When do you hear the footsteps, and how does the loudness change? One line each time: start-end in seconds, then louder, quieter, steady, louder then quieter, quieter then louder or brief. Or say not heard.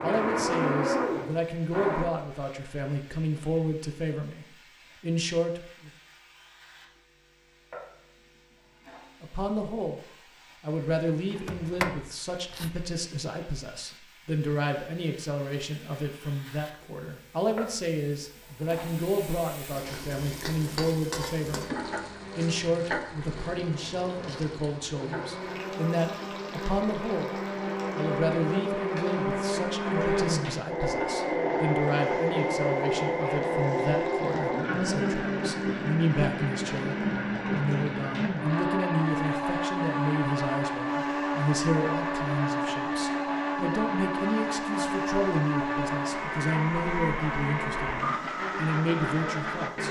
not heard.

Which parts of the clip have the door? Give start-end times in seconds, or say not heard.
11.3-12.7.